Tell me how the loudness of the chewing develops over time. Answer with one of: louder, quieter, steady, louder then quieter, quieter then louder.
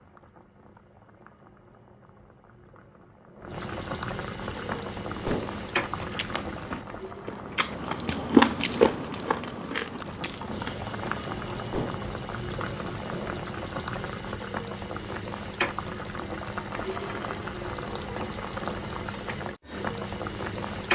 louder then quieter.